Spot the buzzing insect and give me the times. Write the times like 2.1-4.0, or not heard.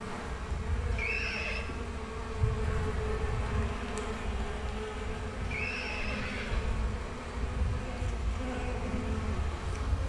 0.0-10.0.